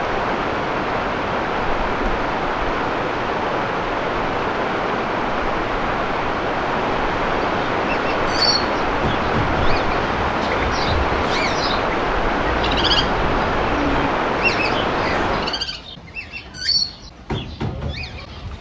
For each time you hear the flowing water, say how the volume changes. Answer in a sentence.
You can hear the flowing water from 0.0 to 15.7 s, at a steady volume.